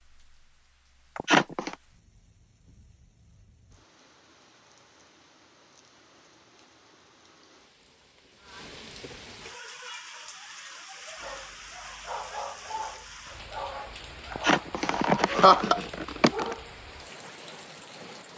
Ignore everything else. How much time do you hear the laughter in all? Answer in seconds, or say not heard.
3 s.